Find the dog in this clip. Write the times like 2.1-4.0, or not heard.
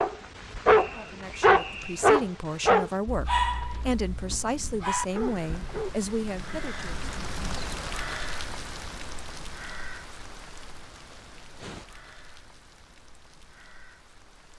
0.0-5.9.